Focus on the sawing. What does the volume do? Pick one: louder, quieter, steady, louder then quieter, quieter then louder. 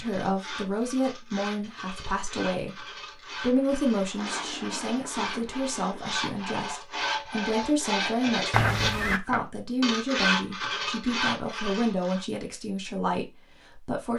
louder.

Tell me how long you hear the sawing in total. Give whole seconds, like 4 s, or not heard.
12 s.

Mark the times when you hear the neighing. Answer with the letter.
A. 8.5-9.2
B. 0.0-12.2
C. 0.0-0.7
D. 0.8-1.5
A.